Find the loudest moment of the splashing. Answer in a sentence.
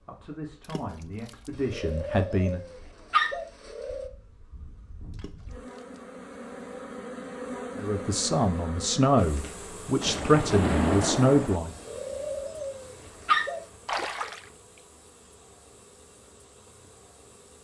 The loudest moment of the splashing is at 11 seconds.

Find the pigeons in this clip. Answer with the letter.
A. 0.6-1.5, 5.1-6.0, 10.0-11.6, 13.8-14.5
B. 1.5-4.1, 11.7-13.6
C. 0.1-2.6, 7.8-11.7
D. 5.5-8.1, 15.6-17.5
B.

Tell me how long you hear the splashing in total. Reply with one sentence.
The splashing can be heard for 4 seconds in total.